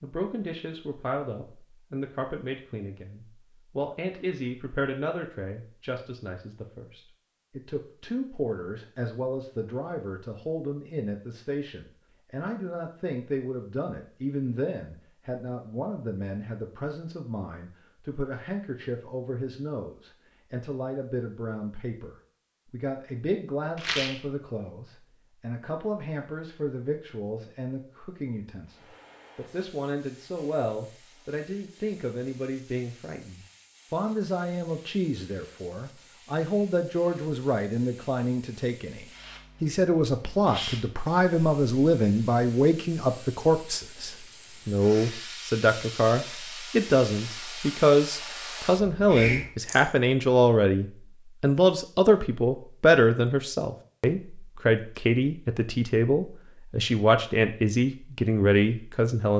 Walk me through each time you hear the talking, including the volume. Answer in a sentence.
You can hear the talking from 0.0 to 59.3 s, getting louder.